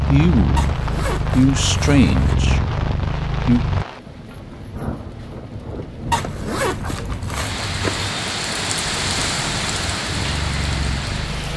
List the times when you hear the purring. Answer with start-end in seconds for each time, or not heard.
0.0-3.9, 8.8-11.5.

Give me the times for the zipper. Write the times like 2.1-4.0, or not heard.
0.6-2.4, 6.1-8.1.